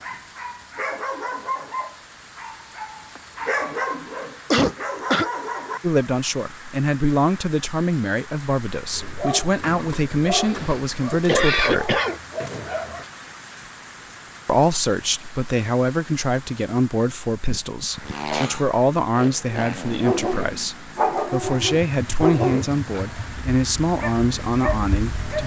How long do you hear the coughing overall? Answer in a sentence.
You can hear the coughing for 4 seconds altogether.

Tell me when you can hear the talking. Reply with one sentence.
The talking can be heard from 5.8 to 12.0 s and from 14.4 to 25.4 s.